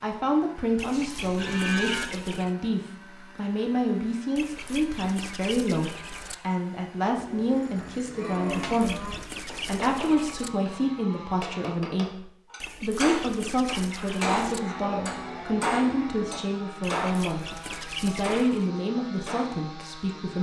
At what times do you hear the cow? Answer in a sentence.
You can hear the cow from 0.9 to 2.0 s, from 7.2 to 9.2 s and from 14.3 to 16.4 s.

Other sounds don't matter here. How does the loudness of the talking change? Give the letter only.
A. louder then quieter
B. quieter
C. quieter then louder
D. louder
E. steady
E.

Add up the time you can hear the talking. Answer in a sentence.
The talking can be heard for 20 seconds in total.